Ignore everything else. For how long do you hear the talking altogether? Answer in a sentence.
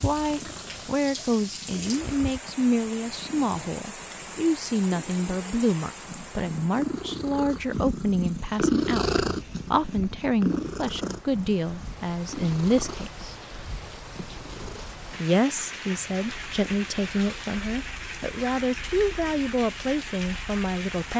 You can hear the talking for 19 seconds altogether.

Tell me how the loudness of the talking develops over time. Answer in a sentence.
The loudness of the talking stays about the same.